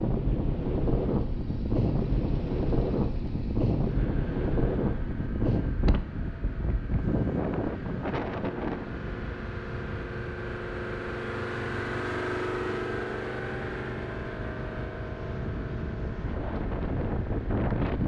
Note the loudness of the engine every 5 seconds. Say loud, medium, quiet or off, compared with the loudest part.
quiet, medium, loud, medium.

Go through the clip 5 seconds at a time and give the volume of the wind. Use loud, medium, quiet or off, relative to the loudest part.
loud, loud, quiet, loud.